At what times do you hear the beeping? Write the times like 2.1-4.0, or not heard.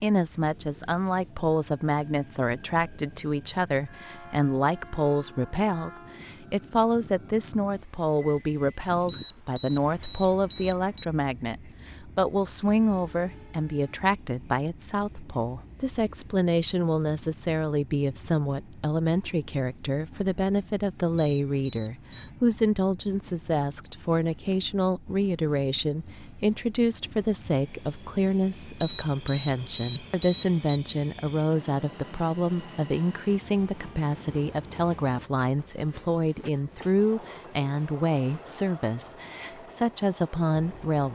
9.1-11.1, 21.1-22.3, 28.8-30.8.